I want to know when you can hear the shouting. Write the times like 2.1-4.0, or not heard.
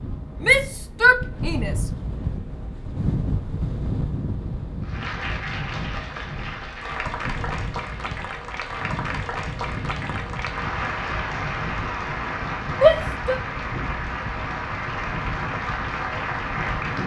0.4-1.9, 12.8-13.4.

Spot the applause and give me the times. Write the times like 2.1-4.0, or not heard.
4.8-17.0.